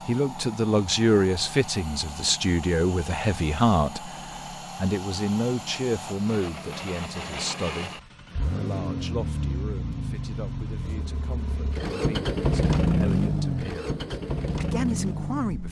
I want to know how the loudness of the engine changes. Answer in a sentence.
The loudness of the engine goes up.